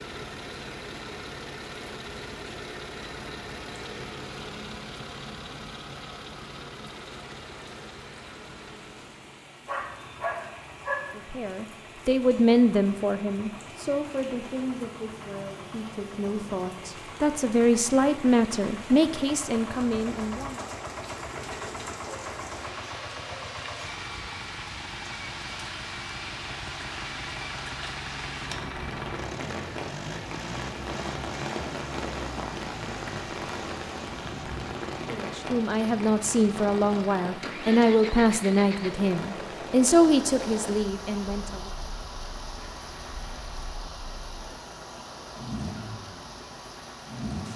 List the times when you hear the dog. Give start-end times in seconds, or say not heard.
9.7-11.1.